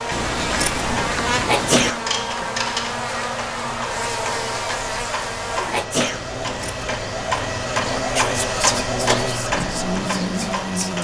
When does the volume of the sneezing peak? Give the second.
2 s.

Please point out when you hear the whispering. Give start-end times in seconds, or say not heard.
7.8-11.0.